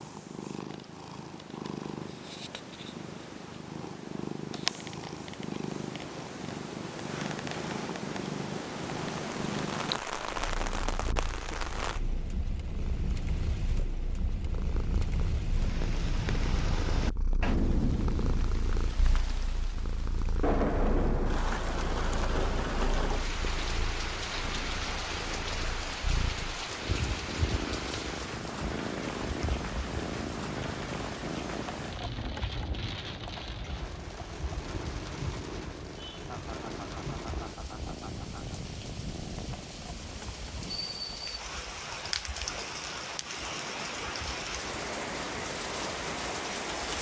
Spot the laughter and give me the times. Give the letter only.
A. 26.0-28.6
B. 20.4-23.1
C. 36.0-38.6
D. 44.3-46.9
C.